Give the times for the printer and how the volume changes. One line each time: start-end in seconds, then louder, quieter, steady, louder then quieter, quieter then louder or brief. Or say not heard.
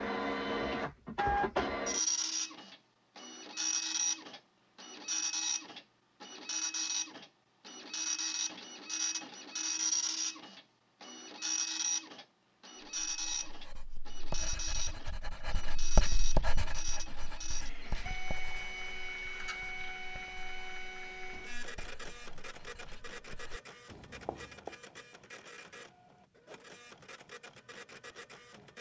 0.0-28.7 quieter.